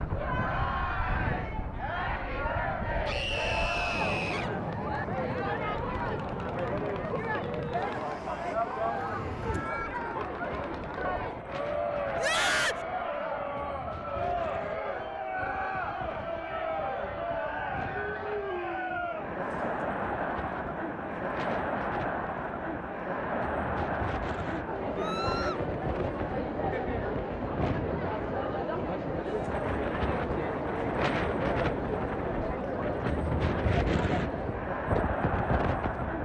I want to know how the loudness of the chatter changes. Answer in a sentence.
The volume of the chatter stays about the same.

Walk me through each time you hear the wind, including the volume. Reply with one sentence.
The wind can be heard from 0.0 to 36.1 s, getting quieter then louder.